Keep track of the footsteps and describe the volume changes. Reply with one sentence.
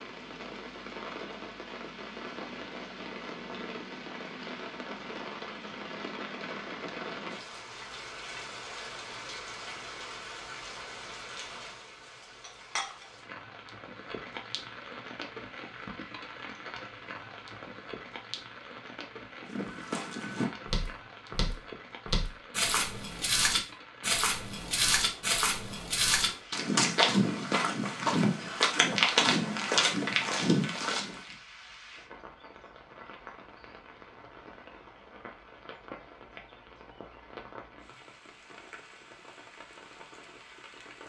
The volume of the footsteps goes up.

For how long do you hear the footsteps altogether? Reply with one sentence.
The footsteps can be heard for 12 seconds in total.